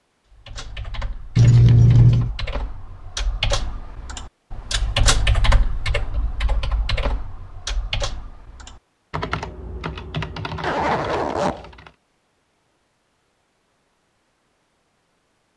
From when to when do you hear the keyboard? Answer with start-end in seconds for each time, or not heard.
0.3-11.9.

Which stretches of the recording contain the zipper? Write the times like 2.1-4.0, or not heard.
1.4-2.3, 10.6-11.7.